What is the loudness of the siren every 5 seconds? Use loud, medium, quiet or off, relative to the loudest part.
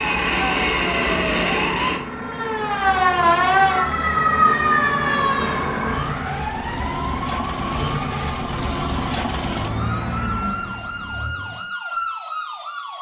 loud, medium, medium.